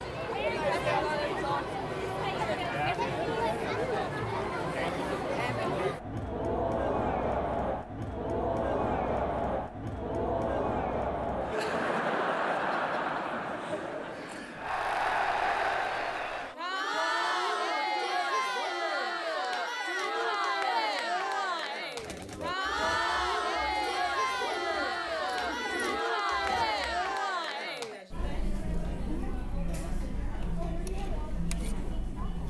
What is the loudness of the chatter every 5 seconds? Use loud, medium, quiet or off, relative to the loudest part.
loud, loud, loud, loud, loud, loud, medium.